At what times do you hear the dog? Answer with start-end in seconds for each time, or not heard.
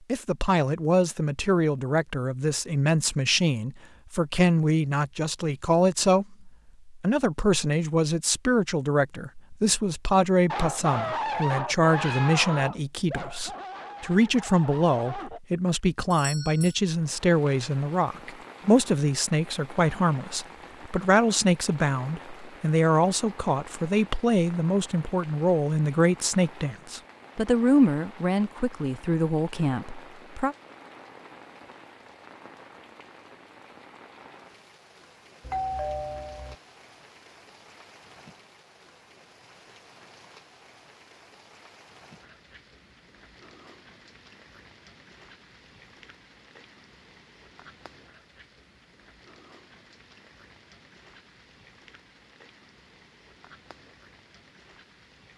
10.4-15.4.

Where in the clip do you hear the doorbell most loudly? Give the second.
36 s.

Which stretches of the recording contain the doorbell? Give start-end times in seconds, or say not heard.
16.1-16.8, 35.4-36.5.